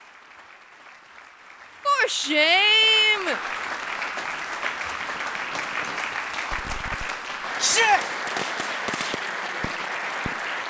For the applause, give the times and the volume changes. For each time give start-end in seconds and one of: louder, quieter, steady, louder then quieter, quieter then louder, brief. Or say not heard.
0.0-10.6 louder.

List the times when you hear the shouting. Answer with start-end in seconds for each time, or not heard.
1.9-3.4, 7.6-8.1.